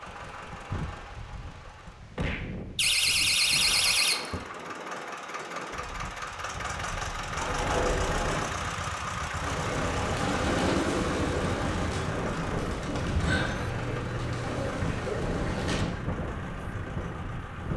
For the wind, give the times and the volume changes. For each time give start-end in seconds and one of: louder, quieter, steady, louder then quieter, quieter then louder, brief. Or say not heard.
0.0-17.7 louder.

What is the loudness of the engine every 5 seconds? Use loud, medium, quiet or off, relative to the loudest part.
medium, loud, loud, medium.